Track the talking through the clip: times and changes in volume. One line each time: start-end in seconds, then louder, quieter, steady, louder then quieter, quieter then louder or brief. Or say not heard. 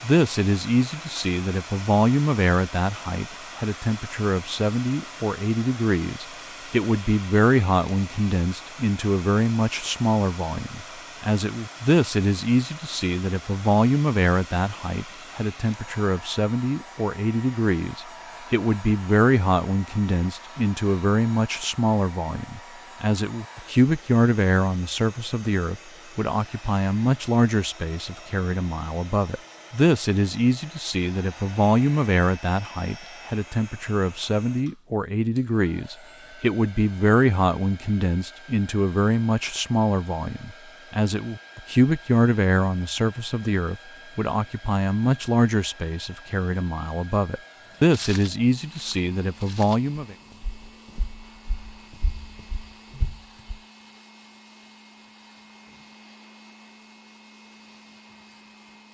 0.0-50.1 steady.